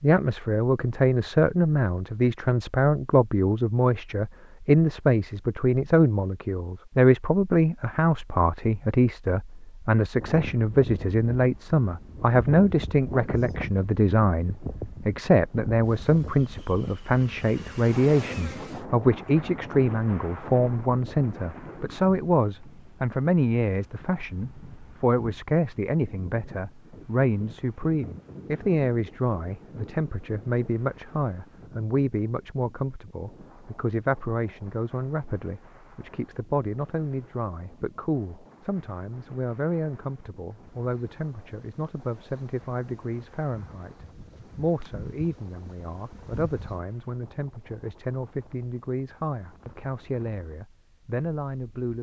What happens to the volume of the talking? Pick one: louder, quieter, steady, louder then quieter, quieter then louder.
quieter.